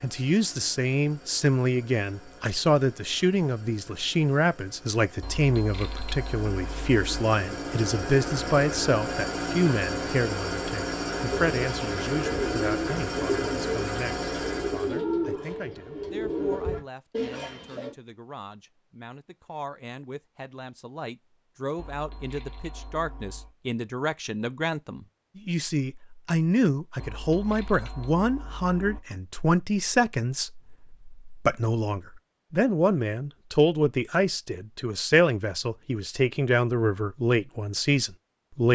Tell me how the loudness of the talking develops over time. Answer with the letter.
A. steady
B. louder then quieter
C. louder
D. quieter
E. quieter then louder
E.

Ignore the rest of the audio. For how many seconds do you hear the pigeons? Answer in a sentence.
You can hear the pigeons for 7 seconds altogether.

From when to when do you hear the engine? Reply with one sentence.
The engine can be heard from 0.0 to 15.0 s.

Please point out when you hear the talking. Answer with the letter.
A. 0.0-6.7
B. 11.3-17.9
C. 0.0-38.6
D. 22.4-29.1
C.